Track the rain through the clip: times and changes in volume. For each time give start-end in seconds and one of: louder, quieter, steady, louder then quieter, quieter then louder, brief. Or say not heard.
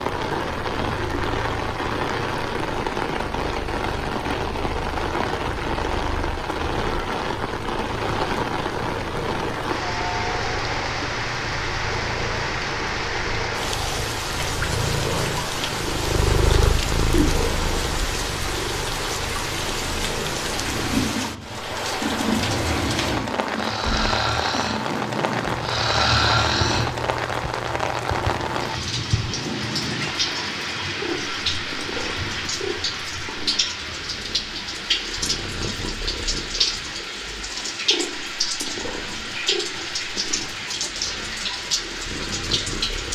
0.0-43.1 steady.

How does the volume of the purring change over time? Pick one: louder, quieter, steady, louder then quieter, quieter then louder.
louder then quieter.